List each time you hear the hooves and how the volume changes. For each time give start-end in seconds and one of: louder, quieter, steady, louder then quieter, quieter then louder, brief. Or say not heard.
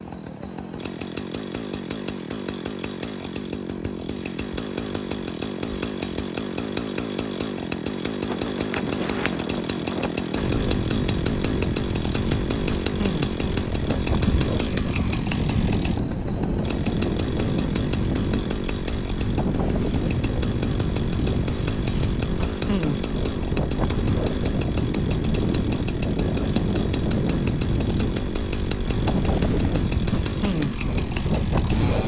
not heard.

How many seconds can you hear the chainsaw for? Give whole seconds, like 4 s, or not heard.
32 s.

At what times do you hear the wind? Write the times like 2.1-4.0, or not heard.
8.2-32.0.